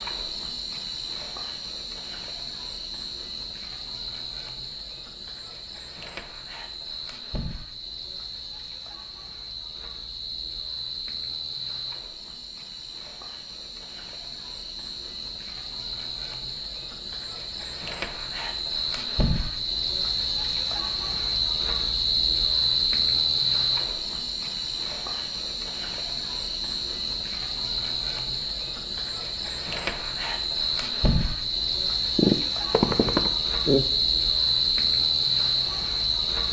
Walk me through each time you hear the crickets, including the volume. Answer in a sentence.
The crickets can be heard from 0.0 to 36.4 s, getting louder.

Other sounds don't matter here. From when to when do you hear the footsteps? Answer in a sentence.
You can't hear the footsteps here.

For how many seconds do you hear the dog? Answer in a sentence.
The dog can be heard for 2 seconds in total.